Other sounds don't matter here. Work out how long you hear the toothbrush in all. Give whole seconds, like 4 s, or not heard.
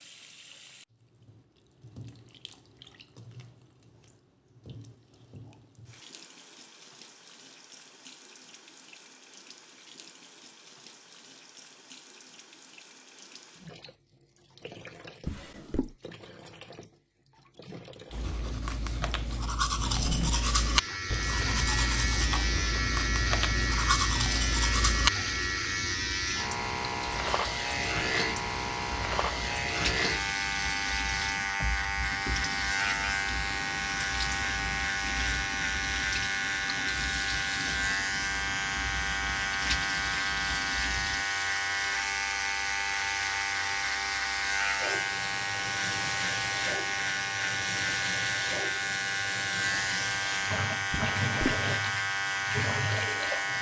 7 s.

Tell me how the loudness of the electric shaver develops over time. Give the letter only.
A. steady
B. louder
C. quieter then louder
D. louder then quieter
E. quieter
A.